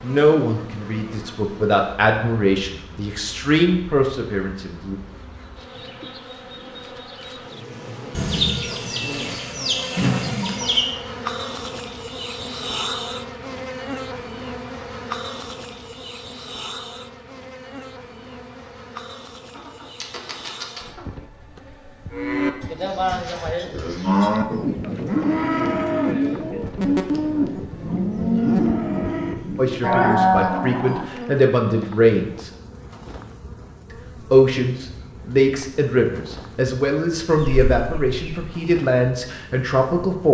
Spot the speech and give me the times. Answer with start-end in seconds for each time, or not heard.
0.0-5.0, 29.6-32.5, 34.3-40.2.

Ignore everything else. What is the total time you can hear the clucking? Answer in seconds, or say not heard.
5 s.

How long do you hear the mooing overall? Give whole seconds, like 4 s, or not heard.
9 s.